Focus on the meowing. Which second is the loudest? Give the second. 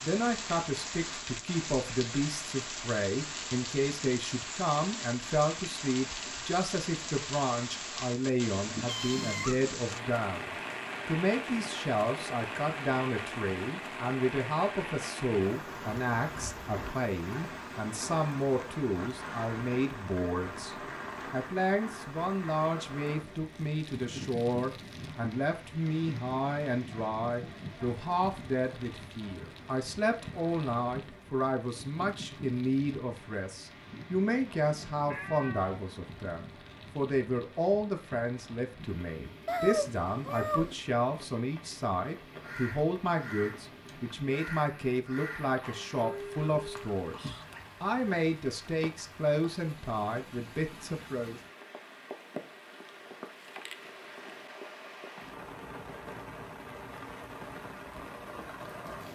40 s.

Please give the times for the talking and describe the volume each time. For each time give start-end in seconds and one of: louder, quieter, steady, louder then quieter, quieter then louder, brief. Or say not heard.
0.0-51.4 steady.